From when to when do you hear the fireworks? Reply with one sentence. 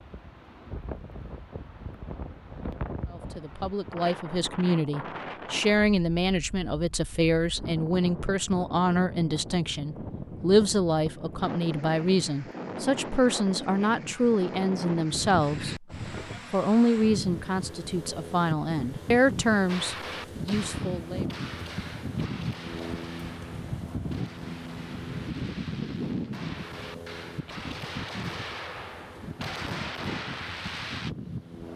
You can hear the fireworks from 19.6 to 31.1 s.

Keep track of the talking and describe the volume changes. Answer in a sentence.
The volume of the talking stays about the same.